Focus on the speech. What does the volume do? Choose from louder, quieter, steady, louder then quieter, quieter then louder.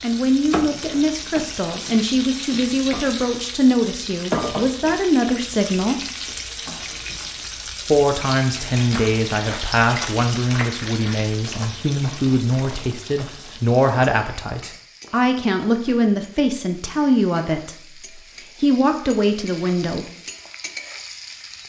steady.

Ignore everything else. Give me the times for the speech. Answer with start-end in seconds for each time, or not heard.
0.0-6.0, 7.8-20.1.